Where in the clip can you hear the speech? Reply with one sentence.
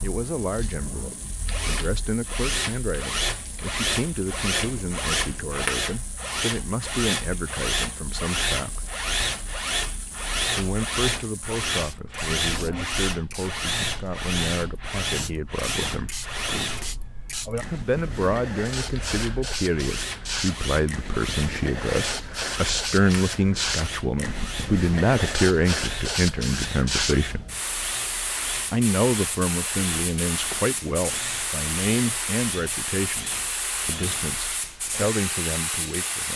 The speech can be heard from 0.0 to 8.8 s, from 10.5 to 16.1 s, from 17.6 to 27.4 s and from 28.7 to 36.3 s.